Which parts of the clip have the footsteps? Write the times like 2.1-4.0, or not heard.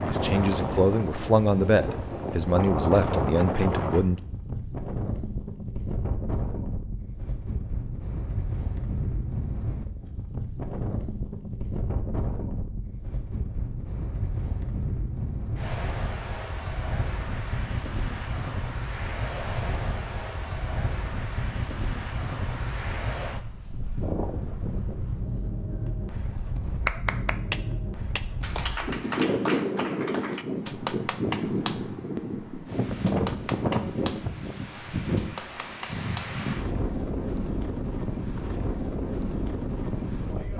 not heard.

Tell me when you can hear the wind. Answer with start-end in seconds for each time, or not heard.
0.0-40.5.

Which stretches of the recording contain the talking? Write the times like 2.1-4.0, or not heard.
0.1-4.2.